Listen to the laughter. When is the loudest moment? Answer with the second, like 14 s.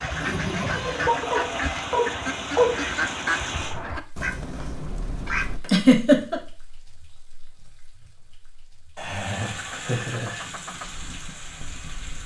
6 s.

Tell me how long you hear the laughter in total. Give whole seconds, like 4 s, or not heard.
4 s.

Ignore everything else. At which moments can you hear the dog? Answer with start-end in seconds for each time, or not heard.
1.1-2.8.